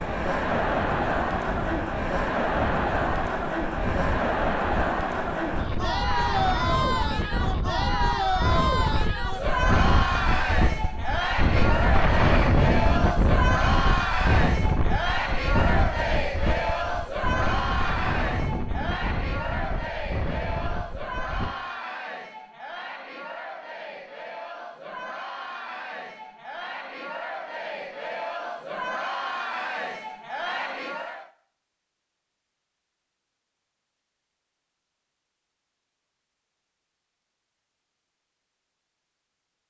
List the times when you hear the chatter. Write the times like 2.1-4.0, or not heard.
0.0-31.3.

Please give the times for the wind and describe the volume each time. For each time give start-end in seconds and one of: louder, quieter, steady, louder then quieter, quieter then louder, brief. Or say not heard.
0.0-21.6 louder then quieter.